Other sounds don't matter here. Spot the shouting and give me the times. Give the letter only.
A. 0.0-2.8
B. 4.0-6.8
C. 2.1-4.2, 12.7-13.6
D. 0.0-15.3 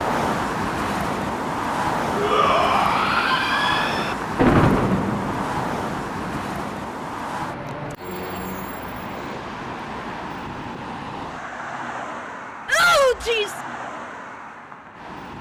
C.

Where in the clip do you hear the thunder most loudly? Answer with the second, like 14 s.
5 s.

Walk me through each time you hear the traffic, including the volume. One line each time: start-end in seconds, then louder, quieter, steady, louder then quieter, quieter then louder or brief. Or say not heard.
0.0-15.3 quieter.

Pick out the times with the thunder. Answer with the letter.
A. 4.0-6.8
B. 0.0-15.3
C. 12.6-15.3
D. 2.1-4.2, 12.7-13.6
A.